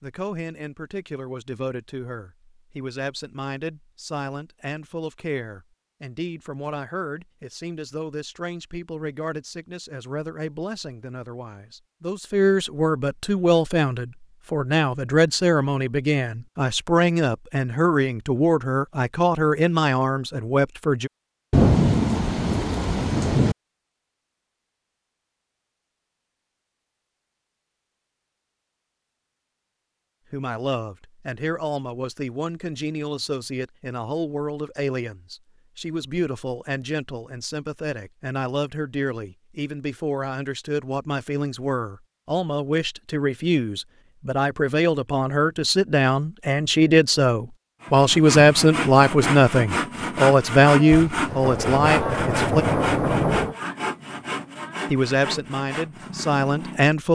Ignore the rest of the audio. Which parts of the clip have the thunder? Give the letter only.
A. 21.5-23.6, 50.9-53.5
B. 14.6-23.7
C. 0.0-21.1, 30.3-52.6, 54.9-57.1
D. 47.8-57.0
A.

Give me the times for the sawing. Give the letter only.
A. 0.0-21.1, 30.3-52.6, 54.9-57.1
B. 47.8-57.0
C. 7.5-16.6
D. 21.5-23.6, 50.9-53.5
B.